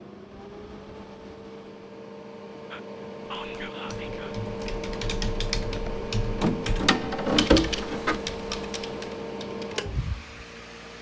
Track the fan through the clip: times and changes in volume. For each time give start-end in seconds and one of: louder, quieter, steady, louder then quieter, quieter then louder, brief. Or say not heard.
0.0-10.9 louder.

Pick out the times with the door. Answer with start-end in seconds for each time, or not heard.
5.8-8.2.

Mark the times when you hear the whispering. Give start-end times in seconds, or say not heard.
2.7-4.3.